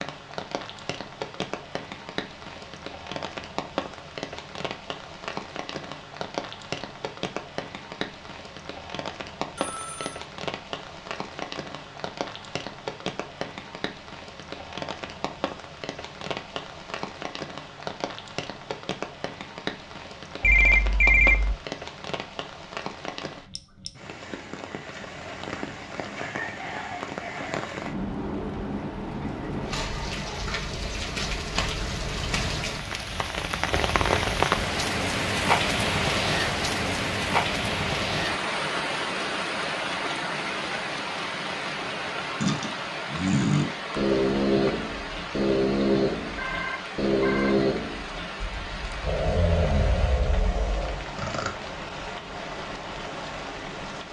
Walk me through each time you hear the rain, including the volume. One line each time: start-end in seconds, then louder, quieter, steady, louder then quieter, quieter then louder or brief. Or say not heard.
0.0-54.0 louder then quieter.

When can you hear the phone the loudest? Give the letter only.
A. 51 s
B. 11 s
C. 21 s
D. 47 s
C.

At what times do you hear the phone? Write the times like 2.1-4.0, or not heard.
9.6-10.2, 20.4-21.6, 46.4-47.5.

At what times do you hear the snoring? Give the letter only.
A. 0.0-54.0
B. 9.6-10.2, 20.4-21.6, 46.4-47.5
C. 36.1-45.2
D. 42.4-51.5
D.